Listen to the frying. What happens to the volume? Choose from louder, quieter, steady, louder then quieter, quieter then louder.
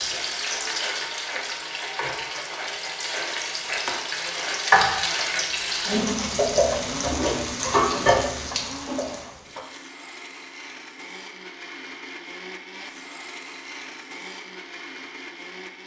louder.